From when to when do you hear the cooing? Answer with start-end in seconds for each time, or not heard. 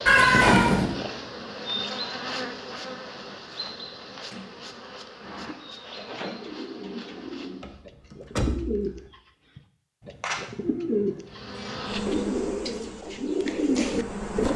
5.2-14.5.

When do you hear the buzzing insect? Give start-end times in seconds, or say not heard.
0.0-7.8, 11.2-14.5.